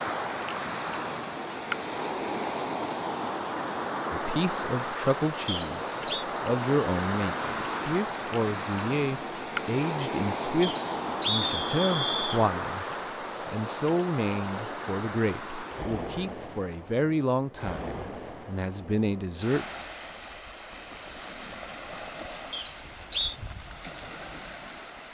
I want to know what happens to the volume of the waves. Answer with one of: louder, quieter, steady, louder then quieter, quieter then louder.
quieter.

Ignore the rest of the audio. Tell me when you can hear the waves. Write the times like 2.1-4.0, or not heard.
0.0-25.1.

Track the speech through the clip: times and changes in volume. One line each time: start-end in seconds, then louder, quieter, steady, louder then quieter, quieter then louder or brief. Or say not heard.
4.1-12.8 steady
13.4-19.6 steady.